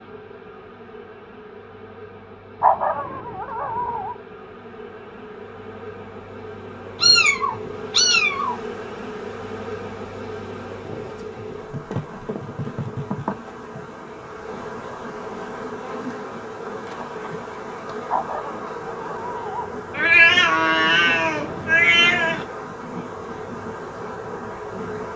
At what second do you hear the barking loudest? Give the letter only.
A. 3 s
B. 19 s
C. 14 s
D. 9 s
A.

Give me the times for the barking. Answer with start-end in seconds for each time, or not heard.
2.6-4.2, 18.1-19.7.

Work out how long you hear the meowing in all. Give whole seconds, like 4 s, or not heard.
4 s.